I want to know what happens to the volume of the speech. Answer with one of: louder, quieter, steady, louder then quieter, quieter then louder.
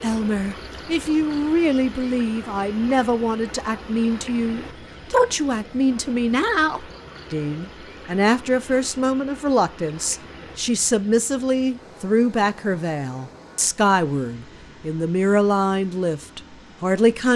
steady.